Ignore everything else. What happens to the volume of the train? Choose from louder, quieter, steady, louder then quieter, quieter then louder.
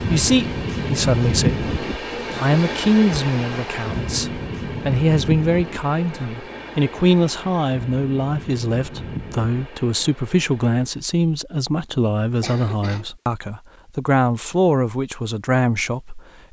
quieter.